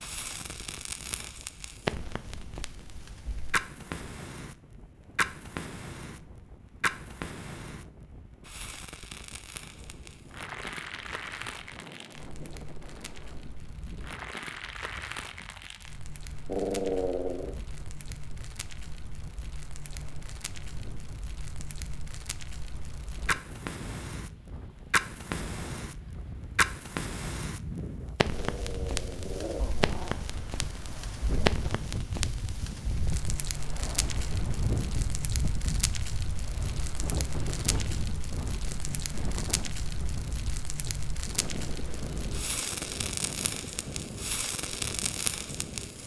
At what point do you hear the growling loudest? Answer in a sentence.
The volume of the growling peaks at 17 seconds.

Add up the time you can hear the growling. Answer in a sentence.
You can hear the growling for 3 seconds altogether.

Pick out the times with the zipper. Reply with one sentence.
You can't hear the zipper here.